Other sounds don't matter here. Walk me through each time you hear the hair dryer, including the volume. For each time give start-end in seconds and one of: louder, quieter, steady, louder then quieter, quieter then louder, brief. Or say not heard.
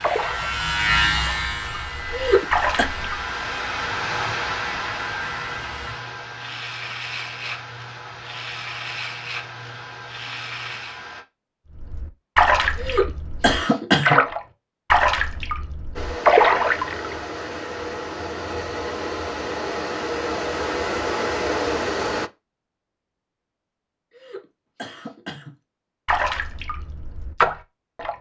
0.0-11.2 louder then quieter
15.9-22.3 louder.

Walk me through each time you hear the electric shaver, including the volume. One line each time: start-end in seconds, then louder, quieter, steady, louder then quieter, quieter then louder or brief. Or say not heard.
0.0-11.2 quieter.